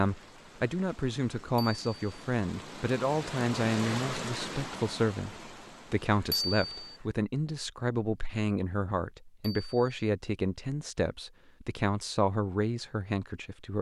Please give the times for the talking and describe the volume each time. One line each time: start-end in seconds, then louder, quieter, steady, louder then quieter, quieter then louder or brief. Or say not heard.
0.0-13.7 steady.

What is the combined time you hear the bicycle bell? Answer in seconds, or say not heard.
2 s.